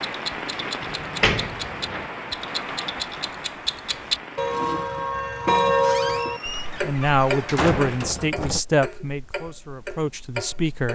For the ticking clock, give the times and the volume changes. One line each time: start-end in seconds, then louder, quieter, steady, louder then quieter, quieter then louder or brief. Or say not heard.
0.0-10.8 louder then quieter.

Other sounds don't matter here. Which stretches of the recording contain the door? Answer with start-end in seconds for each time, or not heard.
0.8-2.0, 5.8-8.6.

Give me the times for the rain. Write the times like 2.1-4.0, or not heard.
0.0-8.2.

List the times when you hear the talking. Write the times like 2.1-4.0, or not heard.
6.8-10.8.